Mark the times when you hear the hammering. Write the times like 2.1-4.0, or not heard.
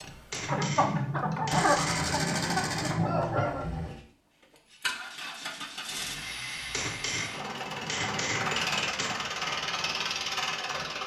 0.3-2.1, 6.7-9.2.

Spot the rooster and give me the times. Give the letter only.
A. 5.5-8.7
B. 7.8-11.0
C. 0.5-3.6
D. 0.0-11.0
C.